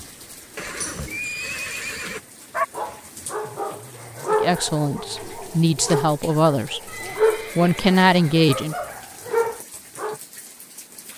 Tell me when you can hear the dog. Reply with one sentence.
You can hear the dog from 2.5 to 10.2 s.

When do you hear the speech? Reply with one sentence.
The speech can be heard from 4.3 to 8.8 s.